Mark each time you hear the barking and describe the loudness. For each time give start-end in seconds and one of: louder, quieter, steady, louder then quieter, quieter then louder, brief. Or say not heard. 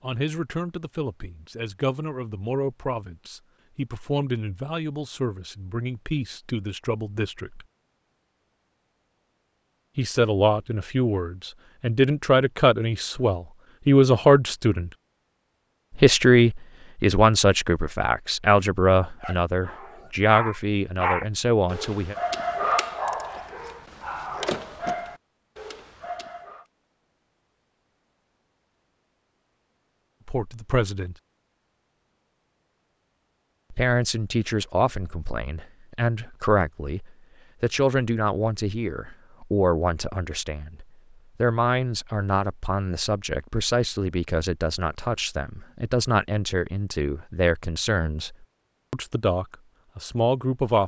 19.2-26.6 louder then quieter.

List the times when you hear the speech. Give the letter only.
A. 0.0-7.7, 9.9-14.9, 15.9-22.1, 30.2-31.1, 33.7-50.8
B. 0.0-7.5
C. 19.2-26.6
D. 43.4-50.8
A.